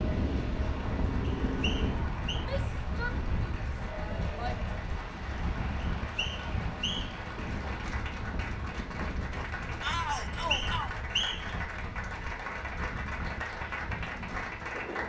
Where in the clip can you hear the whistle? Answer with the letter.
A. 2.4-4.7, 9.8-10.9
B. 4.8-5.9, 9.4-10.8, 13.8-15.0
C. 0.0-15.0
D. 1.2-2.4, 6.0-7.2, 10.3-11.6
D.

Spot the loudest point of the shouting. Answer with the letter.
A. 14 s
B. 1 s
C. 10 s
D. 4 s
C.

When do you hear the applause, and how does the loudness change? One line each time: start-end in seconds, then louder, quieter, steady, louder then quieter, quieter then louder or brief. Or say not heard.
0.0-15.0 louder.